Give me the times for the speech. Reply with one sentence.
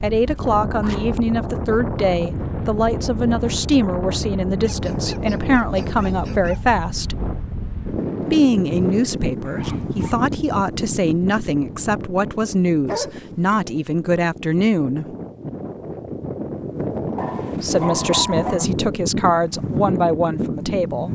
The speech can be heard from 0.0 to 7.2 s, from 8.3 to 15.1 s and from 17.6 to 21.0 s.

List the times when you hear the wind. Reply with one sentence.
The wind can be heard from 0.0 to 21.0 s.